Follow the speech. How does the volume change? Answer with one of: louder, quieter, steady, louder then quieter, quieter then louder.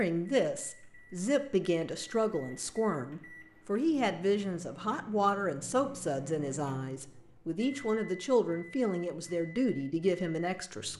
steady.